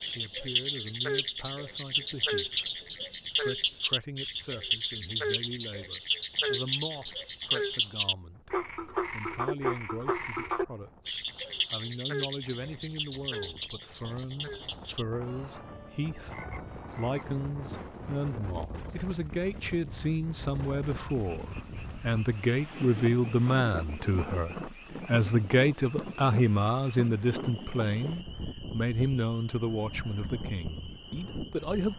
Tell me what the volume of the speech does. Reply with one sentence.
The volume of the speech goes up.